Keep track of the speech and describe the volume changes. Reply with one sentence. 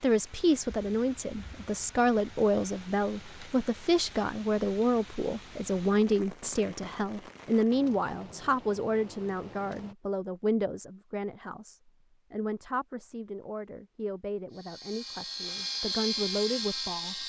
The loudness of the speech goes down.